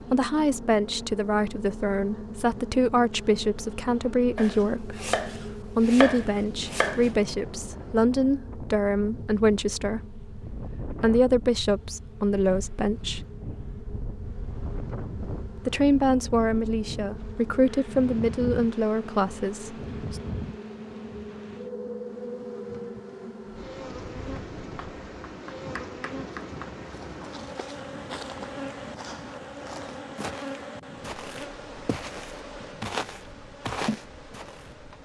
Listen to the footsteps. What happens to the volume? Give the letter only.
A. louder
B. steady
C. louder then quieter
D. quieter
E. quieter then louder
A.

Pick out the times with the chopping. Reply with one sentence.
You can hear the chopping from 4.3 to 7.1 s and from 24.6 to 26.8 s.